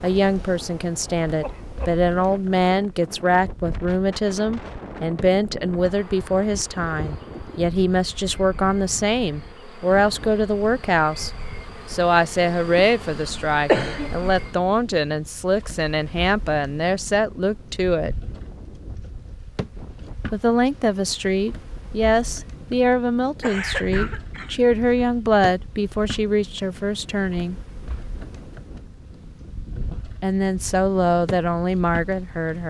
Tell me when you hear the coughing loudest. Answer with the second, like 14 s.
14 s.